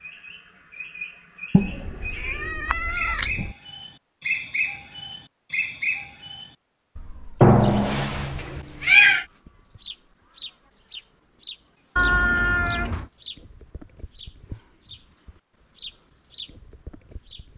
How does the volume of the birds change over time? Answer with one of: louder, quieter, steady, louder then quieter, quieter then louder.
louder then quieter.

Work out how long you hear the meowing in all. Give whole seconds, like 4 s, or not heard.
5 s.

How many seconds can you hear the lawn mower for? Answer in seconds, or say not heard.
not heard.